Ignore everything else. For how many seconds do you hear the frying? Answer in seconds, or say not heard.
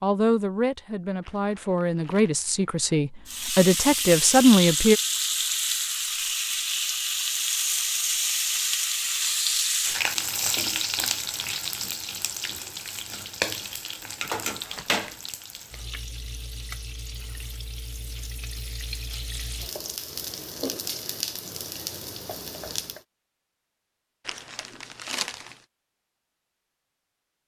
20 s.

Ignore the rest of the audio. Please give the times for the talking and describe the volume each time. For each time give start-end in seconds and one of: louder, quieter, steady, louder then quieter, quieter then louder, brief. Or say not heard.
0.0-5.0 louder.